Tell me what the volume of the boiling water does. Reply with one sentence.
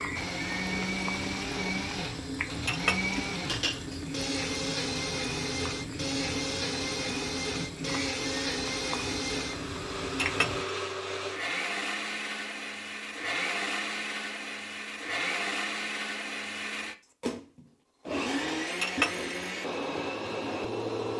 The volume of the boiling water stays about the same.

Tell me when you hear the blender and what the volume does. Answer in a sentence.
You can hear the blender from 0.0 to 21.1 s, at a steady volume.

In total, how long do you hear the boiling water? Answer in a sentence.
The boiling water can be heard for 11 seconds in total.